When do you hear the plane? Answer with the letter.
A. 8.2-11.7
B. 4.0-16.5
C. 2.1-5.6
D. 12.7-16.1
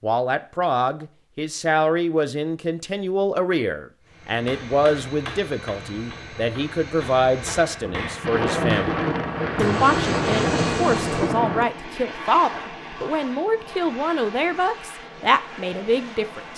B.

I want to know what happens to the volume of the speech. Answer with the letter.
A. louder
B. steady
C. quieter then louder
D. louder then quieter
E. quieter
B.